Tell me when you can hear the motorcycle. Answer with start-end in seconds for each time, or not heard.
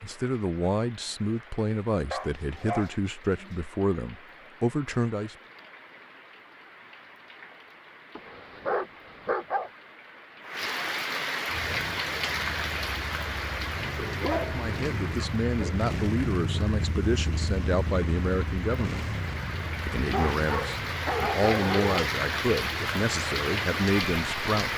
11.4-24.7.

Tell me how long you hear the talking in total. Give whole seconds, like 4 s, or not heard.
15 s.